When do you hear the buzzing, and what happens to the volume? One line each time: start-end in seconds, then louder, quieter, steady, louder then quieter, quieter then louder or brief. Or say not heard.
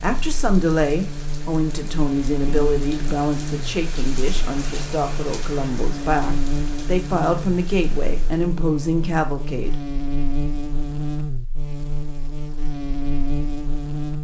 0.0-14.1 steady.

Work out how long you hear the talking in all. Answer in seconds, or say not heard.
10 s.